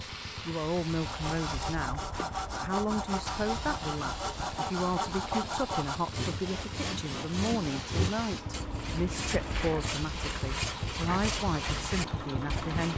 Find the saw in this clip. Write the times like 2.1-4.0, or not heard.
0.8-12.9.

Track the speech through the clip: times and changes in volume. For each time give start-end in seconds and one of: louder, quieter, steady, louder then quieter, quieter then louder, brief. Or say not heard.
0.0-12.9 steady.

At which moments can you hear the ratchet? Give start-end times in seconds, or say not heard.
not heard.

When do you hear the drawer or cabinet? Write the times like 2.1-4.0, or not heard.
not heard.